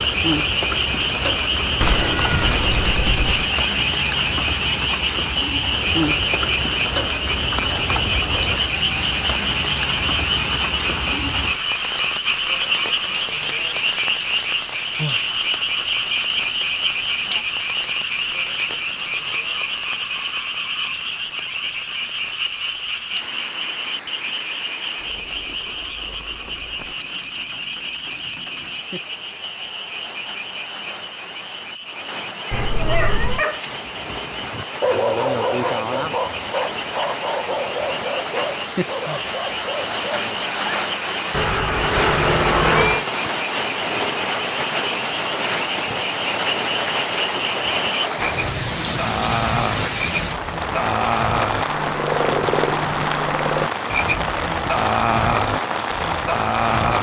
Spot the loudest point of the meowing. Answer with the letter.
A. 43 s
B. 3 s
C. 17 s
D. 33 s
A.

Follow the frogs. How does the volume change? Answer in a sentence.
The loudness of the frogs goes down, then up.